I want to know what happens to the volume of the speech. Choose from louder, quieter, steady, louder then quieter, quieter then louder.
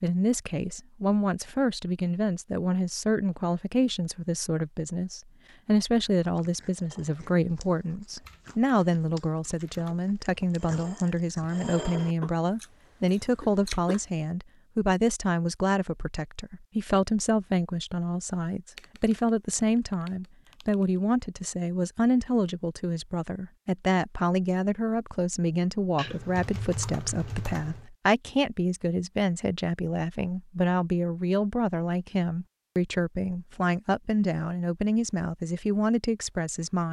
steady.